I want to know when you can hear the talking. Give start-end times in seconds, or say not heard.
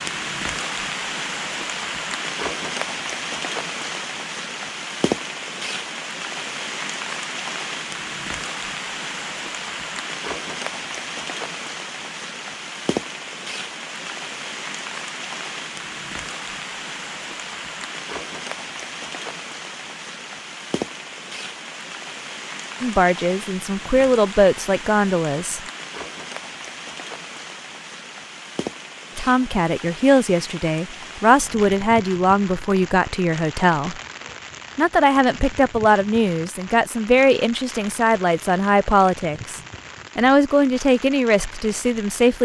22.8-25.6, 29.1-34.0, 34.8-42.4.